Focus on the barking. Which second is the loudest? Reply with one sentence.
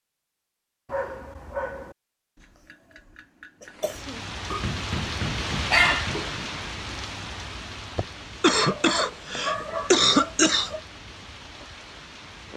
The loudest moment of the barking is at 6 seconds.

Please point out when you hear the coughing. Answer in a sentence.
The coughing can be heard from 2.4 to 4.2 s and from 8.0 to 10.7 s.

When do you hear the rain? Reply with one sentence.
You can hear the rain from 3.6 to 12.5 s.